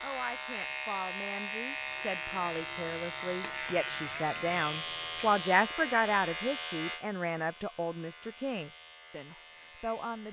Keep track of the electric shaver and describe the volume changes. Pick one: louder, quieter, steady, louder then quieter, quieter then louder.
quieter.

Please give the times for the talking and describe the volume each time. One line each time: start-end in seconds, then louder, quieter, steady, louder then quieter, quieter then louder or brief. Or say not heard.
0.0-10.2 louder then quieter.